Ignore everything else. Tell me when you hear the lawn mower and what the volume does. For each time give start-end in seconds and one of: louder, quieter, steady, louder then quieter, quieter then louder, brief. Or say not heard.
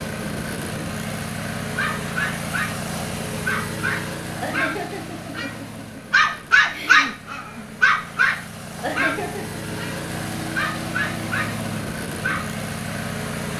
0.0-13.5 quieter then louder.